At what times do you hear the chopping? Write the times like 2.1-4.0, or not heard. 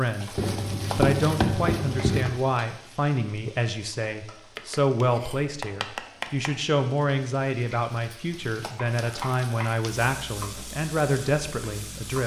0.3-2.4, 4.5-6.5, 8.3-9.8.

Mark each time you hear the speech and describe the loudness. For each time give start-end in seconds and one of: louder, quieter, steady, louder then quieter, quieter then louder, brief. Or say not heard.
0.0-12.2 steady.